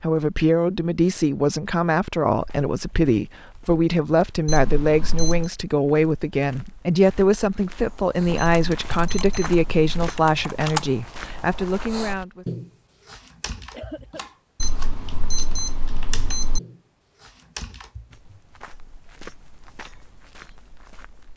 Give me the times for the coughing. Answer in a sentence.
You can hear the coughing from 13.7 to 14.3 s.